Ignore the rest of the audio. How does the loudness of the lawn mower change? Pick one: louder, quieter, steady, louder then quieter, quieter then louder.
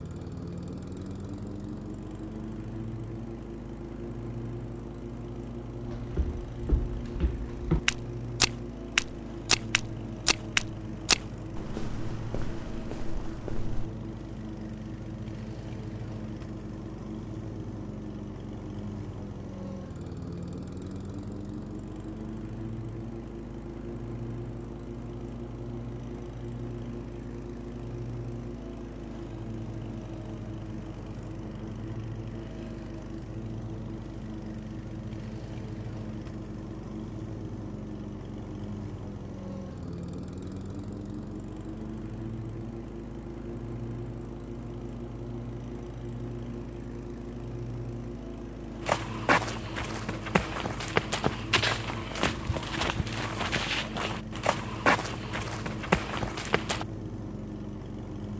steady.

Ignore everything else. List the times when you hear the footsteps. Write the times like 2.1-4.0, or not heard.
5.8-13.9, 48.8-56.9.